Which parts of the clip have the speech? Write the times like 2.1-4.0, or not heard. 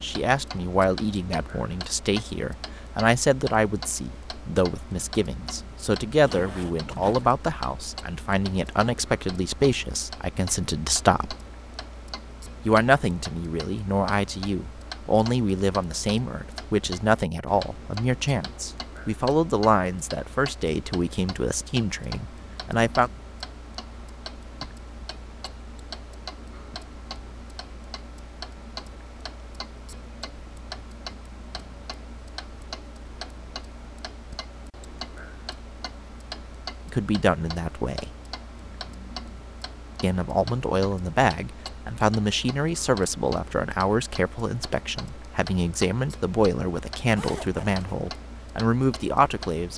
0.0-11.3, 12.7-23.1, 36.9-38.1, 40.0-49.7.